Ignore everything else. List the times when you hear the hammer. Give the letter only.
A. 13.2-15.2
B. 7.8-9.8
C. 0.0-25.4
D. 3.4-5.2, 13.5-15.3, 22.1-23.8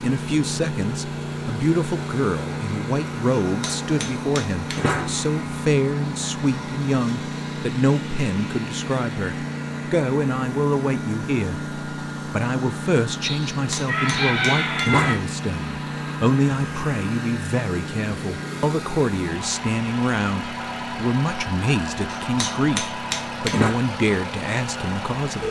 D.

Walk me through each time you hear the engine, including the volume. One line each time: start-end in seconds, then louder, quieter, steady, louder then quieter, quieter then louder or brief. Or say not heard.
0.0-25.4 steady.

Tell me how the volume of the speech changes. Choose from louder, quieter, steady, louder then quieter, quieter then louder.
steady.